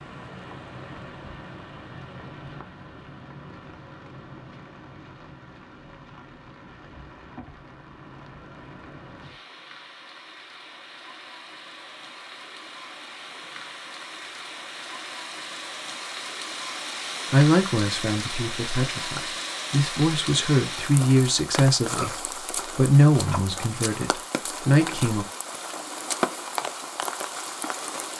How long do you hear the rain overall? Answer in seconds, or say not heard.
28 s.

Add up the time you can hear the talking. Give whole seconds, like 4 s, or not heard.
8 s.